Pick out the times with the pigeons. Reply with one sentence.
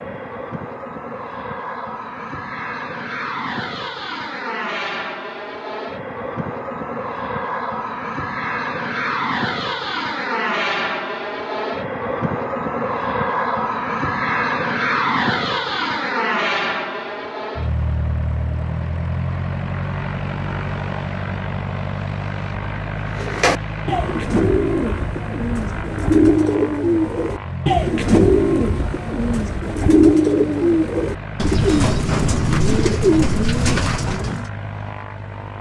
You can hear the pigeons from 23.1 to 34.5 s.